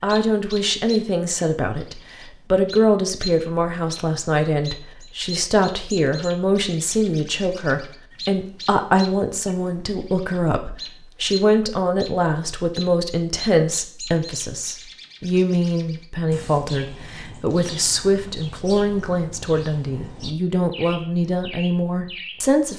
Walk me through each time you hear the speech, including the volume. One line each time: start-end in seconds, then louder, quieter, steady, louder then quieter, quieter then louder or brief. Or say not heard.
0.0-22.7 steady.